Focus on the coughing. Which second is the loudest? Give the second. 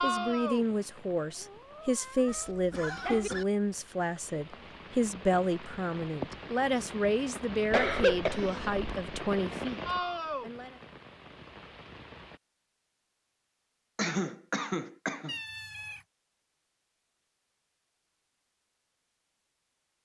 8 s.